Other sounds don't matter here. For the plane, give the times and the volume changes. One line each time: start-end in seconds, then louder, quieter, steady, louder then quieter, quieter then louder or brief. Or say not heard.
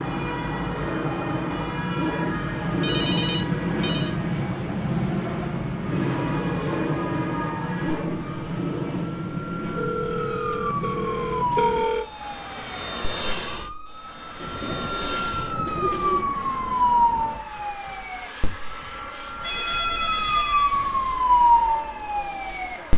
0.0-22.9 quieter.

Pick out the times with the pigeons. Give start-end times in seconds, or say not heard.
4.4-6.4, 14.3-16.2.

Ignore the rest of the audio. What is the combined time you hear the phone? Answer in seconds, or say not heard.
5 s.